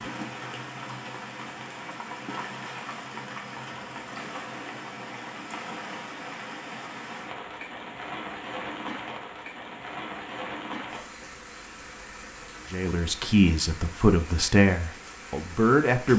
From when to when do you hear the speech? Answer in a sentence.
You can hear the speech from 12.7 to 16.1 s.